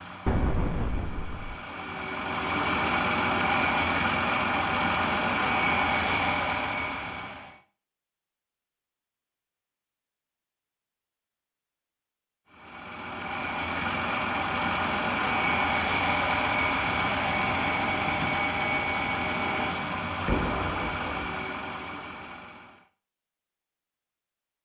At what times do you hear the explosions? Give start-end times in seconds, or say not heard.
0.2-1.6, 20.1-21.3.